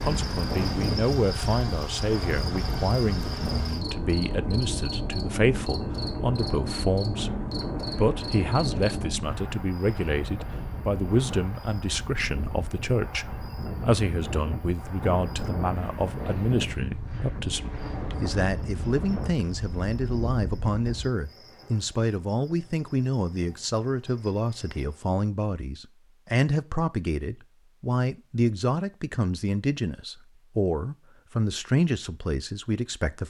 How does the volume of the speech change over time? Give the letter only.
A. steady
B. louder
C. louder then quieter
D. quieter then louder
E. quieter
A.